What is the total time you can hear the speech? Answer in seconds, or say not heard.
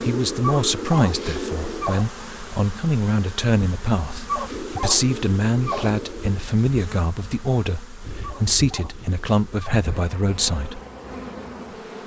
11 s.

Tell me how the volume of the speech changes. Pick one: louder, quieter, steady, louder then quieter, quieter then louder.
steady.